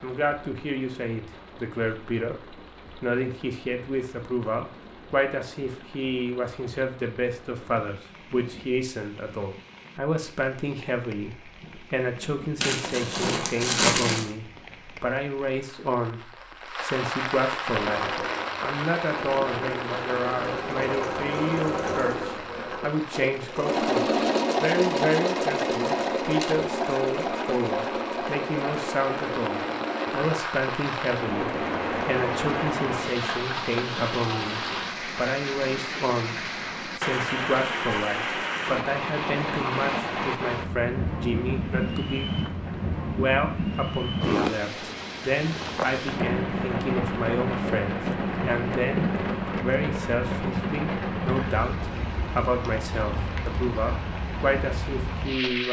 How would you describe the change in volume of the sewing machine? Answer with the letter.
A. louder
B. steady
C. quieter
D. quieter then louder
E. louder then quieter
E.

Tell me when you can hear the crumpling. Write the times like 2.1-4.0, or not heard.
12.6-14.2.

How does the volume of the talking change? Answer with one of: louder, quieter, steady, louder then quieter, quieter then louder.
steady.